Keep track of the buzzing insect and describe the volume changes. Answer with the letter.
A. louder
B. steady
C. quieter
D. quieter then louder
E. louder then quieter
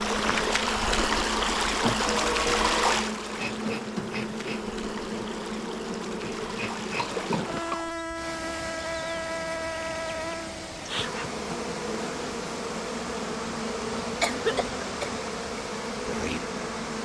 B.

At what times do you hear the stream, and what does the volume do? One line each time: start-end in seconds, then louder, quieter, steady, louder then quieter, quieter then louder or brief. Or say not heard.
0.0-17.0 quieter.